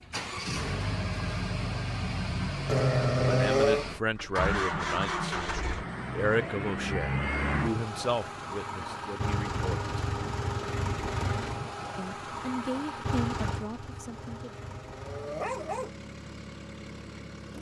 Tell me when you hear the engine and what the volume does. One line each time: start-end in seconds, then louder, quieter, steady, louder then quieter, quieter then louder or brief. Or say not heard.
0.0-17.5 quieter.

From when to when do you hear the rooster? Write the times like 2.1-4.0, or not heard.
not heard.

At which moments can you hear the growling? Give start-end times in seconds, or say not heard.
2.6-3.9, 14.2-15.9.